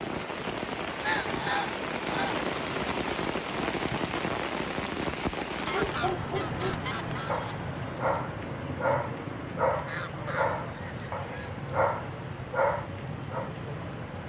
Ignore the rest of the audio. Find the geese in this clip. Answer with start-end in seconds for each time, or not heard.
1.0-2.5, 5.5-7.5, 9.7-11.6.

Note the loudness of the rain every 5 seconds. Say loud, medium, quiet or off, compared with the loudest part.
loud, loud, medium.